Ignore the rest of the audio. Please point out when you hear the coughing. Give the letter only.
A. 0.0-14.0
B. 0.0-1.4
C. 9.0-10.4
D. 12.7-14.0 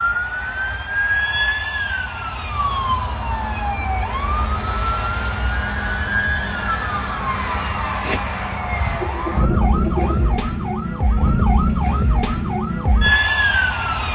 C.